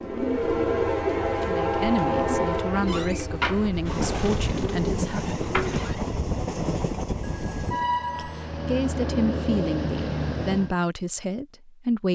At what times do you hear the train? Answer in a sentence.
The train can be heard from 0.0 to 10.8 s.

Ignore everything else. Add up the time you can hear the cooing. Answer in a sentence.
You can hear the cooing for 6 seconds altogether.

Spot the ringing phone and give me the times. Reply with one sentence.
The ringing phone can be heard from 0.2 to 0.8 s and from 7.2 to 8.6 s.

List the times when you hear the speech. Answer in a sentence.
You can hear the speech from 1.4 to 5.3 s and from 8.2 to 12.1 s.